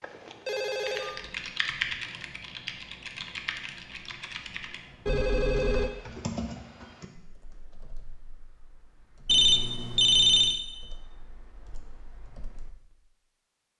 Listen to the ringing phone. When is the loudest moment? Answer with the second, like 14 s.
10 s.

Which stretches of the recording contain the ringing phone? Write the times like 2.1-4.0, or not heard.
0.0-1.2, 5.0-5.9, 9.2-10.6.